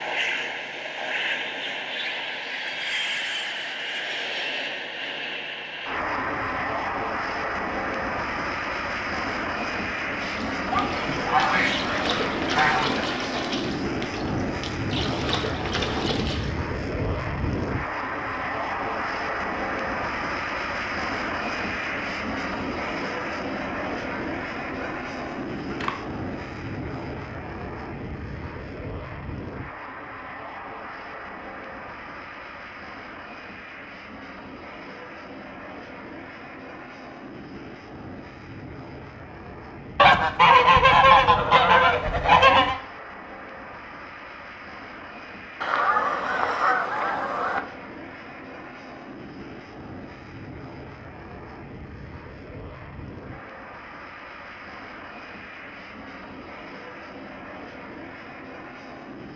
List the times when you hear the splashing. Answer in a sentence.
The splashing can be heard from 10.2 to 16.6 s.